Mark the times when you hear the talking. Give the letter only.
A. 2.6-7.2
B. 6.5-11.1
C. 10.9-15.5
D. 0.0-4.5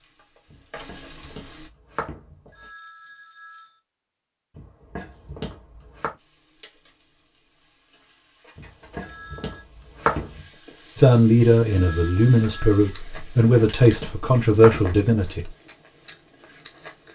C.